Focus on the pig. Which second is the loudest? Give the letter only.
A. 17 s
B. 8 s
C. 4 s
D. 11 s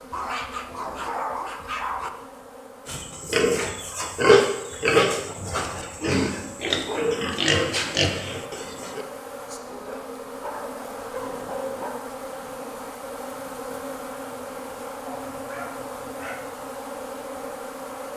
C.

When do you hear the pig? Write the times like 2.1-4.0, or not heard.
2.9-9.1.